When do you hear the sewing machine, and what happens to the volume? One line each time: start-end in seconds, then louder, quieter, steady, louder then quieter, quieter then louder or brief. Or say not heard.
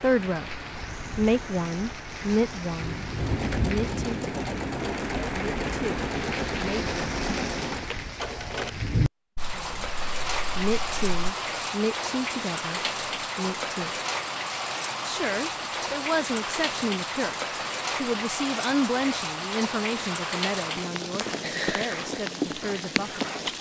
3.1-8.7 steady.